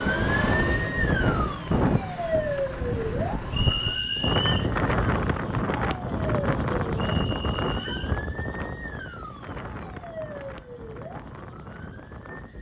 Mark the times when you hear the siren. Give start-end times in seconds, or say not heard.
0.0-12.5.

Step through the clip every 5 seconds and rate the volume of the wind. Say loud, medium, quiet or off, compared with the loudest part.
loud, loud, quiet.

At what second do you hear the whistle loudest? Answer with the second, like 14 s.
4 s.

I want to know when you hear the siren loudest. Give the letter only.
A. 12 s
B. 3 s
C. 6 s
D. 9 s
B.